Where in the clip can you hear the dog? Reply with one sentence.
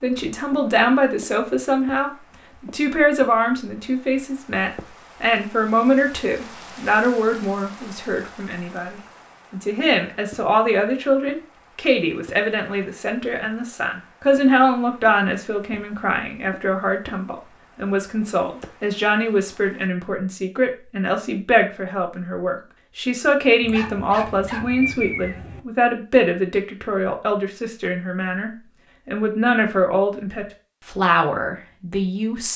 The dog can be heard from 23.6 to 25.6 s.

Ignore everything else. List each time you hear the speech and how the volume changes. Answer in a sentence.
The speech can be heard from 0.0 to 32.5 s, at a steady volume.